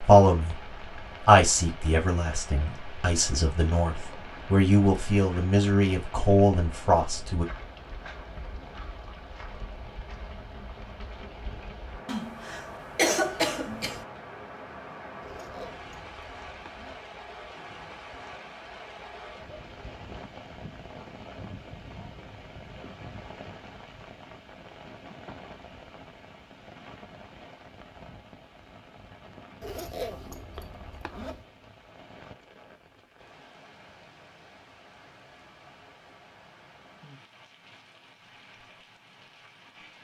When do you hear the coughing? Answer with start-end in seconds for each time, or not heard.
12.1-14.1.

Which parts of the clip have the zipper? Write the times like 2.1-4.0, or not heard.
15.2-17.1, 29.6-31.4.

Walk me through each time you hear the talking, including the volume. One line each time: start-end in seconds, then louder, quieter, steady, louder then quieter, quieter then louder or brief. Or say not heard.
0.0-0.6 brief
1.2-7.5 louder.